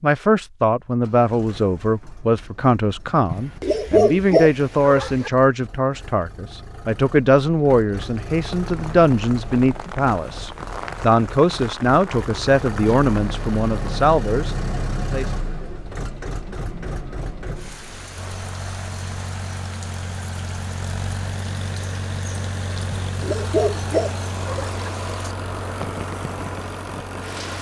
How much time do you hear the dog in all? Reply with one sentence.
The dog can be heard for 4 seconds in total.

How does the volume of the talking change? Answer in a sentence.
The loudness of the talking stays about the same.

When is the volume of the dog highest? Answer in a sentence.
The loudest moment of the dog is at 4 seconds.